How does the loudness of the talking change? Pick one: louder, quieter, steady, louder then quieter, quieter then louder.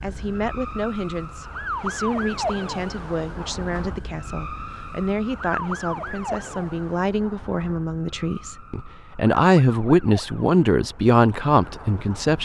louder.